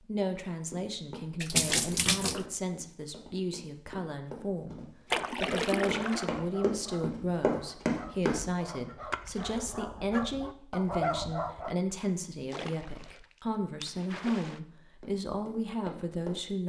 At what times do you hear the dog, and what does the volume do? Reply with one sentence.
The dog can be heard from 6.0 to 11.8 s, getting louder.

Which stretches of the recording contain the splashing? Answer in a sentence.
The splashing can be heard from 1.4 to 2.5 s, from 5.1 to 6.3 s, from 9.1 to 9.8 s and from 12.5 to 14.6 s.